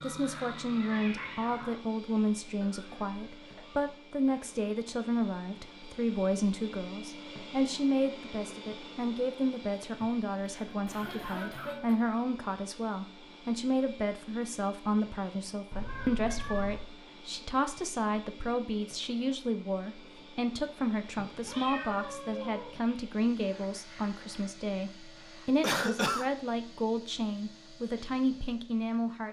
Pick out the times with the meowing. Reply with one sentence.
The meowing can be heard from 0.0 to 1.8 s, from 15.7 to 16.9 s and from 21.1 to 22.8 s.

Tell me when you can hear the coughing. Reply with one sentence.
You can hear the coughing from 2.6 to 4.5 s, from 9.9 to 11.9 s and from 25.6 to 26.2 s.